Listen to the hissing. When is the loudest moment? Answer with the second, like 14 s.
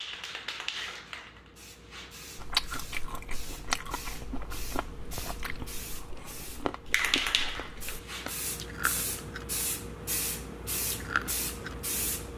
7 s.